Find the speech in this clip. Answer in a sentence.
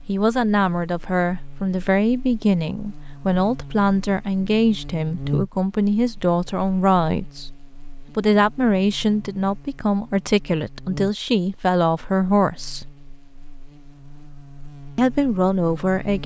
You can hear the speech from 0.1 to 7.5 s, from 8.2 to 12.8 s and from 14.9 to 16.2 s.